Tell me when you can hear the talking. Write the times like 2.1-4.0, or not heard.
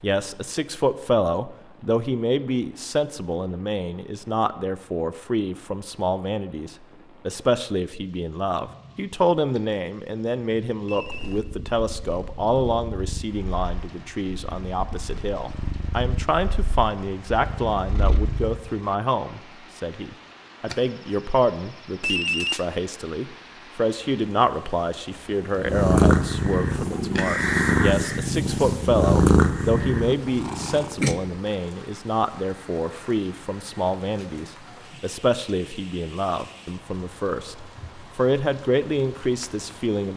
0.0-40.1.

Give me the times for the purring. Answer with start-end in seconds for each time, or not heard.
10.9-18.9, 25.6-31.1.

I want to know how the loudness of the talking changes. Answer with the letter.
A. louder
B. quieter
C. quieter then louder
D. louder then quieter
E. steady
E.